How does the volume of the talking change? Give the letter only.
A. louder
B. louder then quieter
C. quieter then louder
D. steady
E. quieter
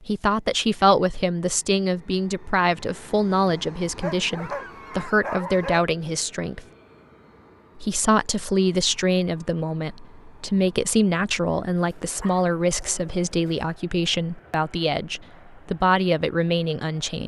D.